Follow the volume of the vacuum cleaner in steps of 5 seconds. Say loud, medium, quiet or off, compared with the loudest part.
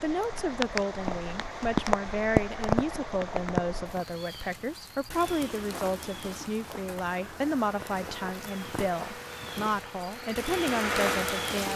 off, quiet, loud.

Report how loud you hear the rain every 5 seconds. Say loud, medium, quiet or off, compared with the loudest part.
loud, medium, medium.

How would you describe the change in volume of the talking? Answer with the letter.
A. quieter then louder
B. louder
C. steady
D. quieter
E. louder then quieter
C.